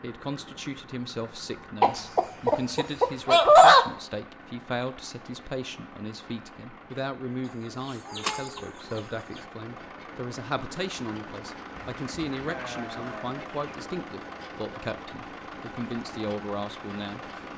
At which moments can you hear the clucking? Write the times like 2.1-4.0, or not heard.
1.8-3.9, 7.8-9.4, 11.8-13.8.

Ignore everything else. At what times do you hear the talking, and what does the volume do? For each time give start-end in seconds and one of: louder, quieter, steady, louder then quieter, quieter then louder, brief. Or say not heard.
0.0-17.2 steady.